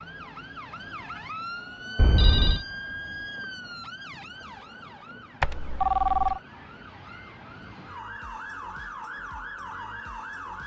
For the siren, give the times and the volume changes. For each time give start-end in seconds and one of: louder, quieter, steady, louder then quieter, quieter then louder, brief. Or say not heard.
0.0-10.6 quieter then louder.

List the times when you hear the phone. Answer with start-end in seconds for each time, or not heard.
1.9-2.6, 5.4-6.4.